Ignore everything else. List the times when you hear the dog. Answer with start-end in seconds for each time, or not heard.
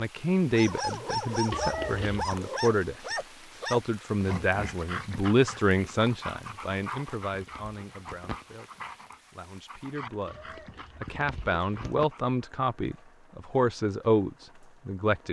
0.5-12.3.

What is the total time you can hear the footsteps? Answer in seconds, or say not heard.
not heard.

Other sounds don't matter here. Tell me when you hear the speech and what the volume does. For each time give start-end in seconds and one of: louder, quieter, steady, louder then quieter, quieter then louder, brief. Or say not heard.
0.0-3.0 brief
3.6-15.2 quieter then louder.